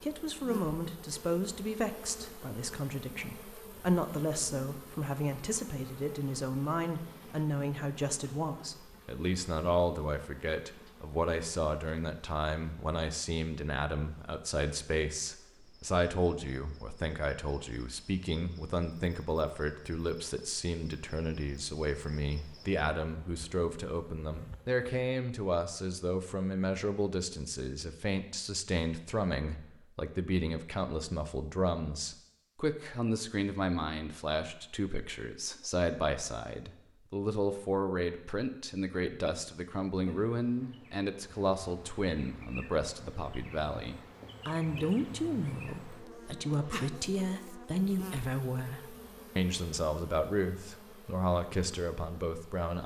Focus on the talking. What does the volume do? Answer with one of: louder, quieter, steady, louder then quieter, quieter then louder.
steady.